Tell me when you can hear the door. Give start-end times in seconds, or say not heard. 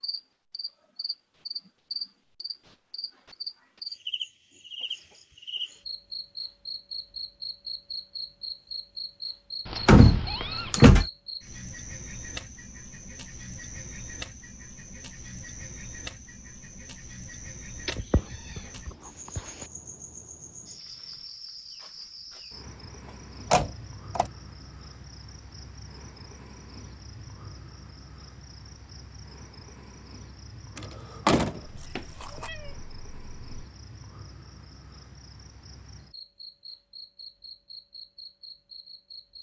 9.8-11.1, 23.5-24.3, 30.8-32.5.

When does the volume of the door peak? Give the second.
10 s.